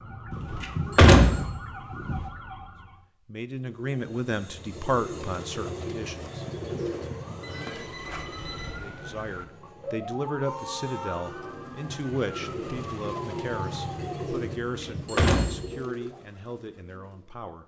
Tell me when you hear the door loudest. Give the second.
1 s.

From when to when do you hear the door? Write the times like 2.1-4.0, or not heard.
0.3-2.1, 14.6-15.7.